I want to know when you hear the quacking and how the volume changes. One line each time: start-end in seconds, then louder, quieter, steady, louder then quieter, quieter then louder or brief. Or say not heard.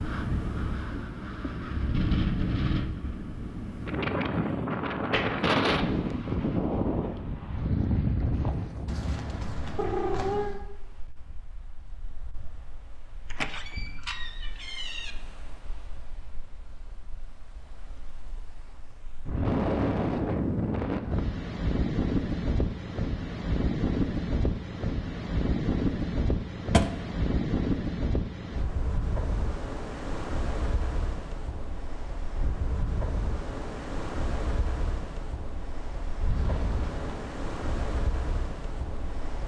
not heard.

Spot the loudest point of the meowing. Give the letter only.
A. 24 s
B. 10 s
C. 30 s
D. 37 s
B.